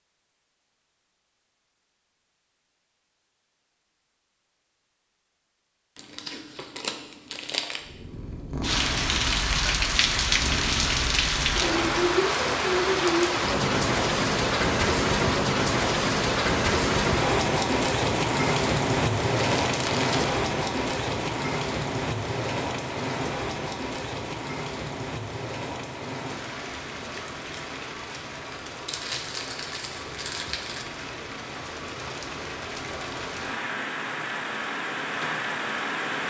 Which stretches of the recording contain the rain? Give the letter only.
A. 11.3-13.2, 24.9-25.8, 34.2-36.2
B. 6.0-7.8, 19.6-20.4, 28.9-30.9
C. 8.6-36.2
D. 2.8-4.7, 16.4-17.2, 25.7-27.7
C.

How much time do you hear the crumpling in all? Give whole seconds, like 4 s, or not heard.
5 s.